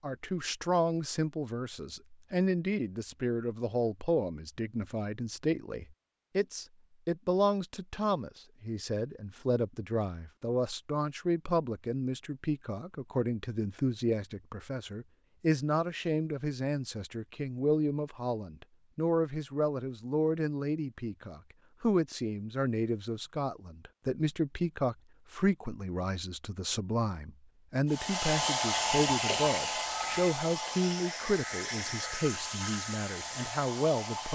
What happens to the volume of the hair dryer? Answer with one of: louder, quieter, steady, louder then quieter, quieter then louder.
quieter.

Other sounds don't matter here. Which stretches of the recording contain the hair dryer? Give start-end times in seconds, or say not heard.
27.9-34.2.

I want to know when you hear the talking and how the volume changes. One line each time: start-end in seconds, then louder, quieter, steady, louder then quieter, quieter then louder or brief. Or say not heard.
0.0-34.2 steady.